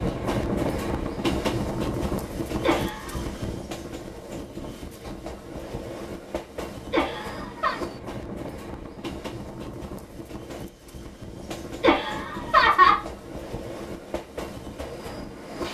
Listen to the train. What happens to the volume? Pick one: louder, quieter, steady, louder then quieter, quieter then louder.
quieter.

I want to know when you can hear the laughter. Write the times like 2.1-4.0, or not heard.
2.6-3.2, 6.9-7.8, 11.8-13.0.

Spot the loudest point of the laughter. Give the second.
13 s.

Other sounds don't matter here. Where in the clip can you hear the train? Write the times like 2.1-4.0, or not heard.
0.0-15.6.